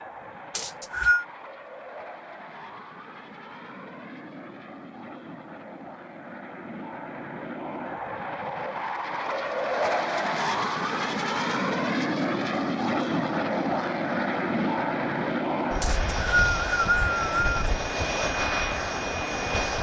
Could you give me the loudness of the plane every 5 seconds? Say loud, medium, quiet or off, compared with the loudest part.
quiet, medium, loud, loud.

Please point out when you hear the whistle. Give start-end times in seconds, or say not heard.
0.6-1.2, 15.8-17.6.